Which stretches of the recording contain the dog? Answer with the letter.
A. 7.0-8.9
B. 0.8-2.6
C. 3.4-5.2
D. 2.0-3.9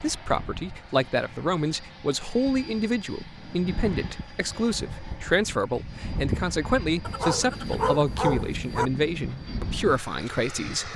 A.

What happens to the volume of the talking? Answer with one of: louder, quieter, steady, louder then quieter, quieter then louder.
steady.